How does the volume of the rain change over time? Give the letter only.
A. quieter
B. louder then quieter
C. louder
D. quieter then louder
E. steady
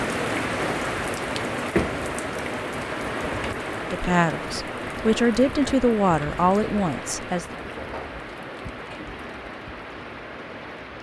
A.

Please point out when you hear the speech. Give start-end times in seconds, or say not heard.
3.9-7.5.